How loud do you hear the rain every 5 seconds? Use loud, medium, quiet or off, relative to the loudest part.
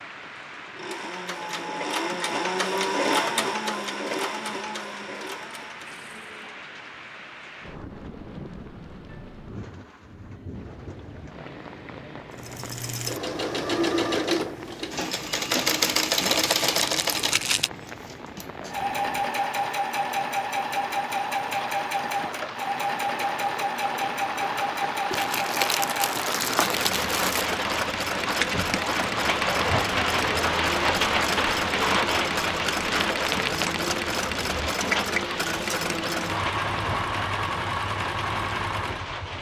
quiet, quiet, quiet, quiet, medium, loud, loud, medium.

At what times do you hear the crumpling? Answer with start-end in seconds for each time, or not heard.
16.2-17.7, 25.1-27.4.